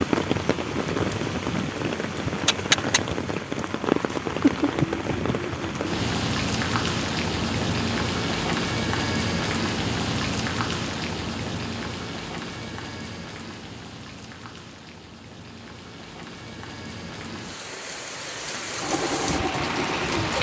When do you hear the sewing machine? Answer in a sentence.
You can hear the sewing machine from 18.8 to 20.3 s.